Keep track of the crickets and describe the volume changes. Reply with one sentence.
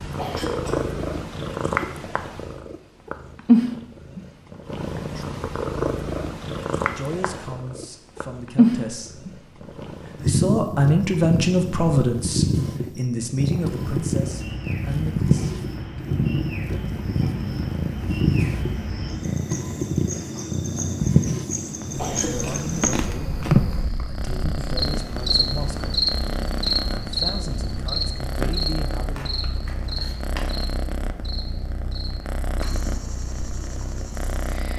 The volume of the crickets goes up, then down.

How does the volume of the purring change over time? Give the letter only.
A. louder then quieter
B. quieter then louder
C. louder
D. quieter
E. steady
D.